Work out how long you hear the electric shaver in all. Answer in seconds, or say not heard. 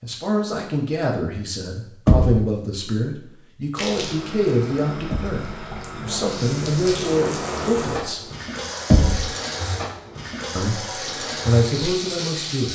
not heard.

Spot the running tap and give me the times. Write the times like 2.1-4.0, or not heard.
3.8-12.7.